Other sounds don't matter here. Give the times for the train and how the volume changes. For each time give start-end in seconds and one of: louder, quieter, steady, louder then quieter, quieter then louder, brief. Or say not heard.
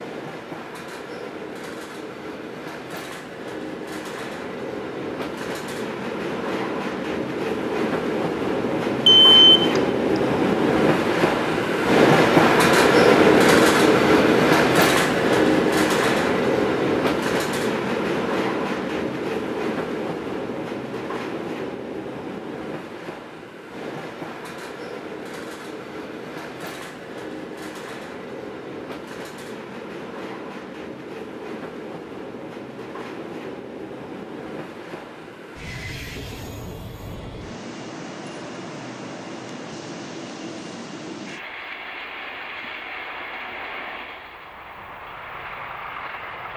0.0-46.5 louder then quieter.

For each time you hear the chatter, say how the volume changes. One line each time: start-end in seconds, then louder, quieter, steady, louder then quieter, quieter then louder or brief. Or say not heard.
not heard.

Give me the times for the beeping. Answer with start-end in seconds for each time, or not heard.
9.1-9.7.